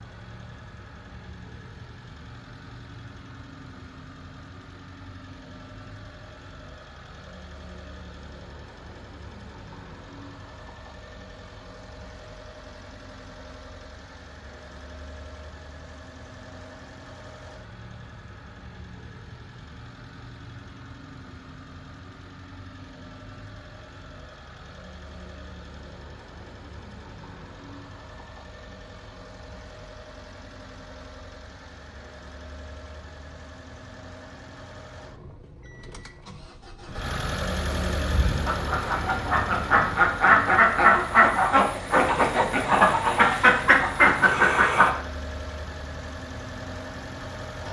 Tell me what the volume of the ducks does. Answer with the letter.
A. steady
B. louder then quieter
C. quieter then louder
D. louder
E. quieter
D.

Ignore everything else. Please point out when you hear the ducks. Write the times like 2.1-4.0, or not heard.
38.1-44.9.